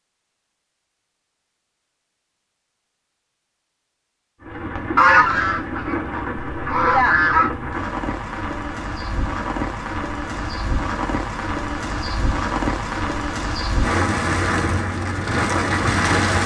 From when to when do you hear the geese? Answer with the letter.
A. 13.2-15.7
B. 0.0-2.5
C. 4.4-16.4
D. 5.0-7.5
D.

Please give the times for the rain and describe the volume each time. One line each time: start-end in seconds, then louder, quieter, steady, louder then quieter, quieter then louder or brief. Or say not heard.
4.4-16.4 louder.